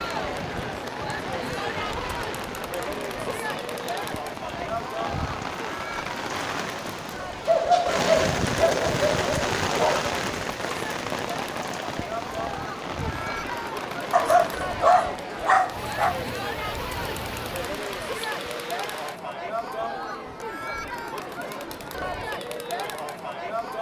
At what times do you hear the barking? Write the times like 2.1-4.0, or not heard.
7.5-10.2, 14.1-16.1.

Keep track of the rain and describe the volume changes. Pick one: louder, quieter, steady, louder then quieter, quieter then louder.
louder then quieter.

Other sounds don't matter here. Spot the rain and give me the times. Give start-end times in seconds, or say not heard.
0.0-19.2.